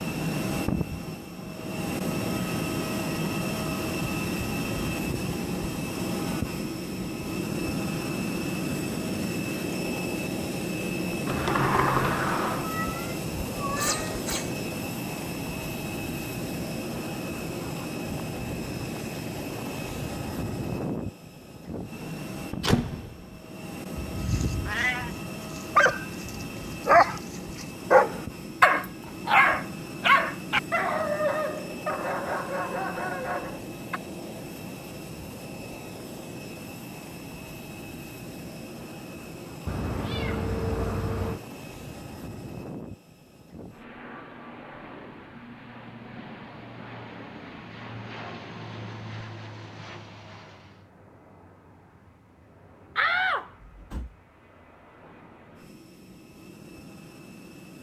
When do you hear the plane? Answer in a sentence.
The plane can be heard from 0.0 to 57.7 s.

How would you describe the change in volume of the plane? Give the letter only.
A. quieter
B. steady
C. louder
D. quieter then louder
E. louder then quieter
A.